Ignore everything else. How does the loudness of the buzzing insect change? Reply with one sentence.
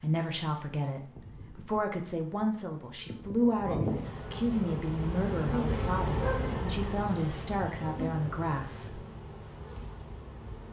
The volume of the buzzing insect goes up, then down.